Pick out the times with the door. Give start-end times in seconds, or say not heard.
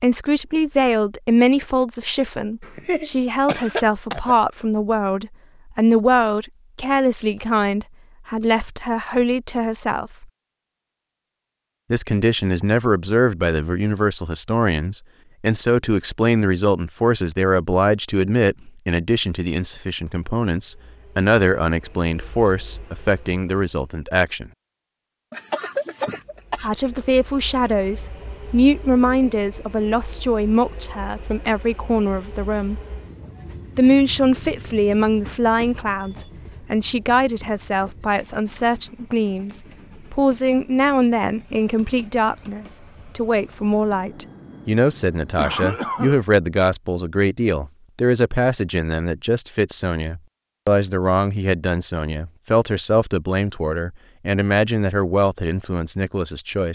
not heard.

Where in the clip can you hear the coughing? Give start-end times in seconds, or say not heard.
2.6-4.3, 25.3-26.7, 45.4-46.2.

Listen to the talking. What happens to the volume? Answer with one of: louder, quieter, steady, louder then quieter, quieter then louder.
steady.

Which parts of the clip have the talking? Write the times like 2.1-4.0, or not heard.
0.0-10.2, 11.9-24.5, 26.6-32.8, 33.8-56.7.